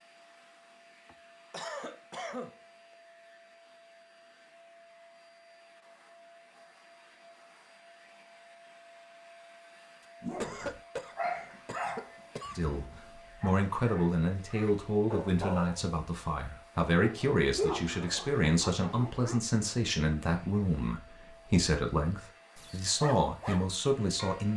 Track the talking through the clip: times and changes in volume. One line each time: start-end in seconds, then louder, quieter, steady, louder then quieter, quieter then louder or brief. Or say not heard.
12.6-24.5 steady.